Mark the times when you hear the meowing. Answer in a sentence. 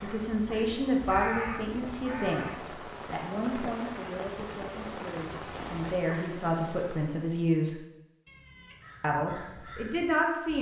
You can hear the meowing from 8.2 to 8.9 s.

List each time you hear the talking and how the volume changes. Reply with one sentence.
The talking can be heard from 0.0 to 7.8 s, getting quieter then louder; and briefly from 9.0 to 10.5 s.